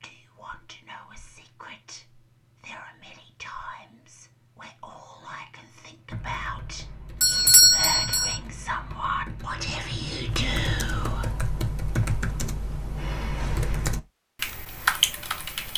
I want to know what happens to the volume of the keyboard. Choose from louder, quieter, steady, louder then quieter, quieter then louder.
louder.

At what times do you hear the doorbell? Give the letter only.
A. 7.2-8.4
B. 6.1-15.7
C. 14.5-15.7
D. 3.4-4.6
A.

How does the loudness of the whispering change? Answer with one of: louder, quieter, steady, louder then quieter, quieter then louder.
louder.